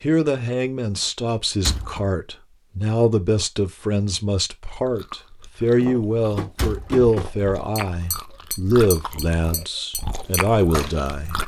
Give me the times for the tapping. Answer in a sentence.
The tapping can be heard from 5.8 to 10.9 s.